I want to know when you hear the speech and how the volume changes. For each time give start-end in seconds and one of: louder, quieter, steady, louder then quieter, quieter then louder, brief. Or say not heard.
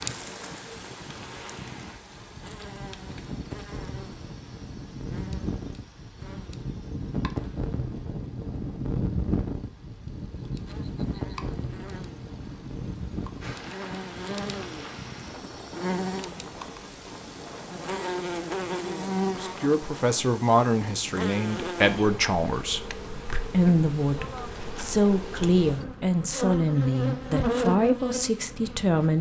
19.3-29.1 steady.